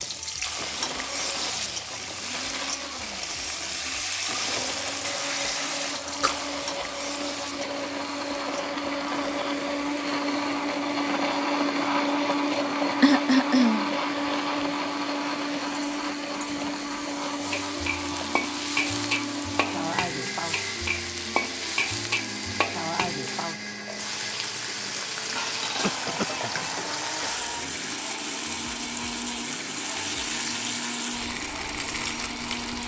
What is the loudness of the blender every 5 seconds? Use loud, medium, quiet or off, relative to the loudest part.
quiet, medium, loud, medium, medium, medium, medium.